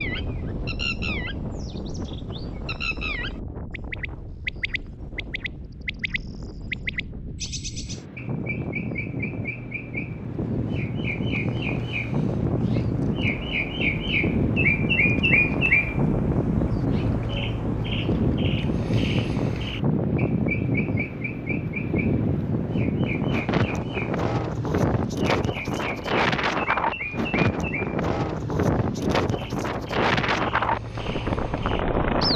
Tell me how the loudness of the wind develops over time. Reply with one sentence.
The loudness of the wind goes up.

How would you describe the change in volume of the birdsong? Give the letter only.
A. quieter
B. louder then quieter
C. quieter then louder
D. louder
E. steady
B.